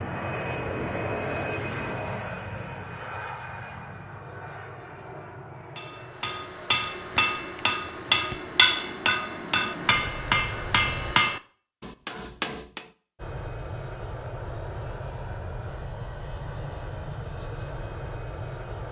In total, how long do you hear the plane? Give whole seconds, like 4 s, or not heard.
17 s.